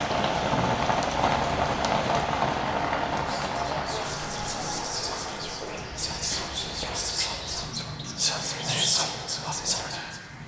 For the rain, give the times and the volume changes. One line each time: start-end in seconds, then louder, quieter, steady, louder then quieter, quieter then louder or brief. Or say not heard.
0.0-10.4 quieter.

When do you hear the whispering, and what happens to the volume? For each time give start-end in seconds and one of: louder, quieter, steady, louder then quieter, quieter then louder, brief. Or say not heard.
3.1-10.2 louder.